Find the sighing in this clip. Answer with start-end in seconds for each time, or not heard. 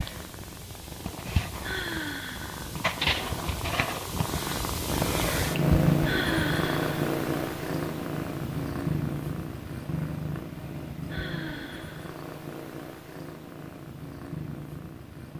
1.6-2.8, 6.0-7.1, 11.1-12.2.